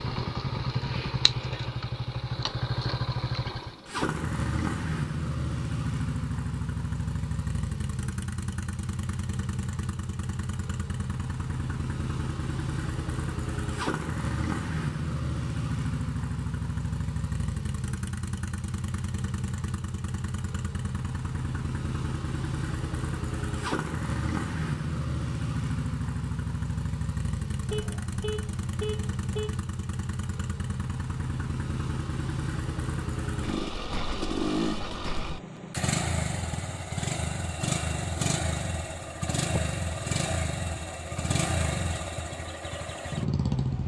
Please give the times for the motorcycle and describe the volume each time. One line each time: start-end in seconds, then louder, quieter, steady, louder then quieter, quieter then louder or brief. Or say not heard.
0.0-43.8 steady.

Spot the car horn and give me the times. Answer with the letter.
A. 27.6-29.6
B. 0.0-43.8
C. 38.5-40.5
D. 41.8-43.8
A.